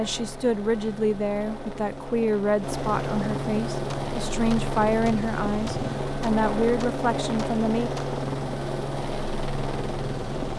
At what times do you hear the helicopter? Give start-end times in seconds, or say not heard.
0.0-10.5.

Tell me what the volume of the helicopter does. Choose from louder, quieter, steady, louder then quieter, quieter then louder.
louder.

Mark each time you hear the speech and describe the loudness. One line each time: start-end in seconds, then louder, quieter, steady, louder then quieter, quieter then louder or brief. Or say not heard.
0.0-7.9 steady.